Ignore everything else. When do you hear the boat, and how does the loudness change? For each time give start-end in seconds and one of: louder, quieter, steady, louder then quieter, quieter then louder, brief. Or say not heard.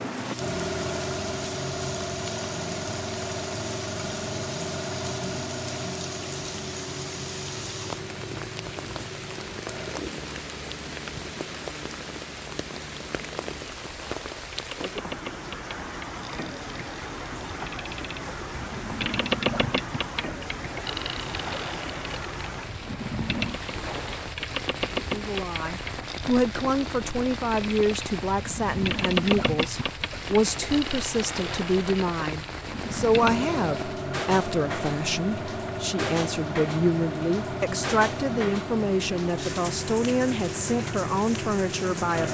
0.0-42.2 quieter then louder.